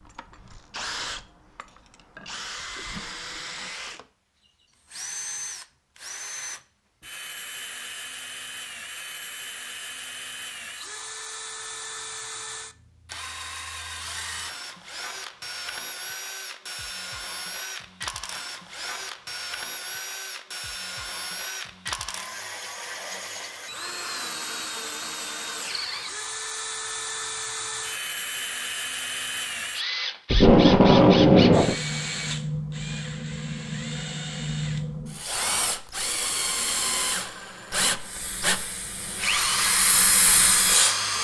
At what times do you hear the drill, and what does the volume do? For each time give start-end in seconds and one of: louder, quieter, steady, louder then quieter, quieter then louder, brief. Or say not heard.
0.0-41.2 louder.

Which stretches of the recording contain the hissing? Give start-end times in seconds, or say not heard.
38.0-41.0.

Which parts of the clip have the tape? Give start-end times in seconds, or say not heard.
30.3-31.8.